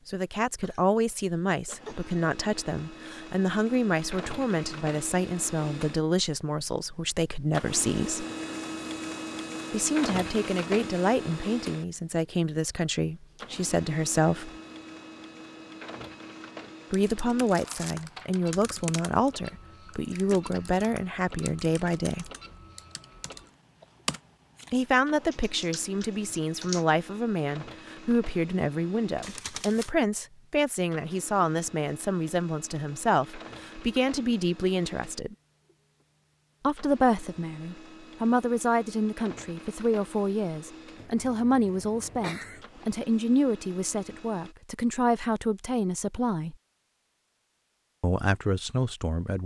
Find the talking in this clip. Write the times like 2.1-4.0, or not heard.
0.1-8.2, 9.7-14.5, 16.9-22.3, 24.7-35.4, 36.6-46.5, 48.0-49.4.